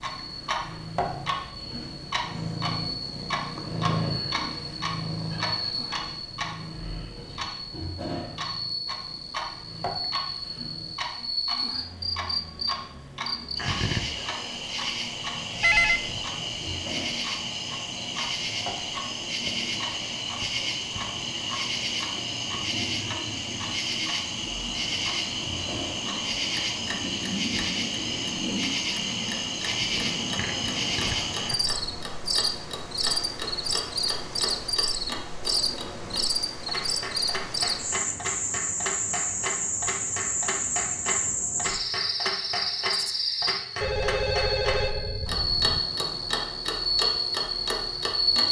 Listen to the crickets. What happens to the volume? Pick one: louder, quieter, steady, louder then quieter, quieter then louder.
louder.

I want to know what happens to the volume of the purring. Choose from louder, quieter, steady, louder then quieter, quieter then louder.
louder then quieter.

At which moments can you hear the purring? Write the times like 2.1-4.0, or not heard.
0.0-10.9.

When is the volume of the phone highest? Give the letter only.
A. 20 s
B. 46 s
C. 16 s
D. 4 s
C.